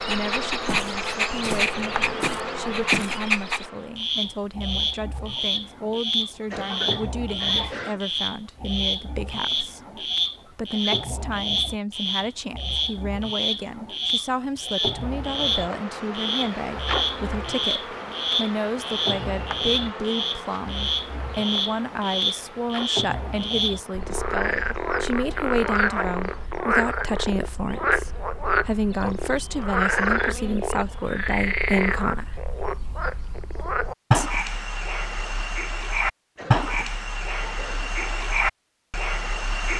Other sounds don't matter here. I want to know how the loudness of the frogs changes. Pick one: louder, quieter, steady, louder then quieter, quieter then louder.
steady.